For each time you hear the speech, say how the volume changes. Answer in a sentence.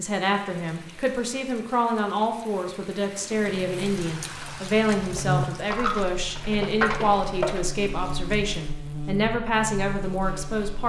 The speech can be heard from 0.0 to 10.8 s, at a steady volume.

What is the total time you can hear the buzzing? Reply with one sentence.
You can hear the buzzing for 7 seconds altogether.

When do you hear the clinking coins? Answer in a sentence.
The clinking coins can be heard from 5.0 to 7.6 s.